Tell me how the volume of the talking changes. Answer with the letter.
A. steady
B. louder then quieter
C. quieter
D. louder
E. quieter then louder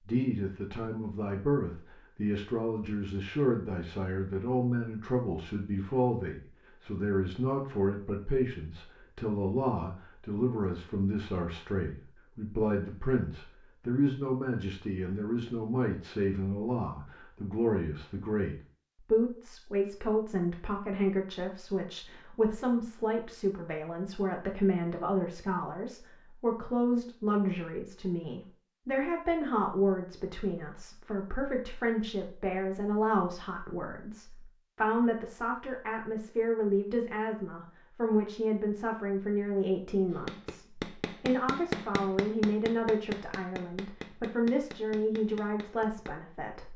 A.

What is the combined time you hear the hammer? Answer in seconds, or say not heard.
6 s.